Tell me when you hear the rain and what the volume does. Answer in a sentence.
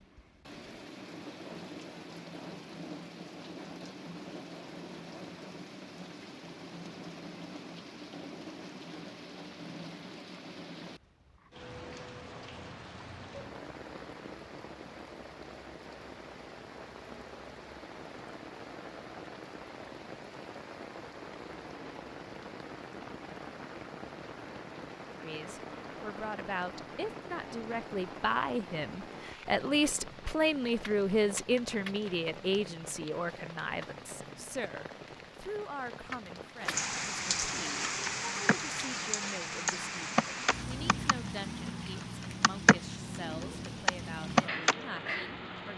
You can hear the rain from 0.0 to 45.7 s, getting louder.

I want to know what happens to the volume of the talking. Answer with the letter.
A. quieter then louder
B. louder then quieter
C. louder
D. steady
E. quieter
B.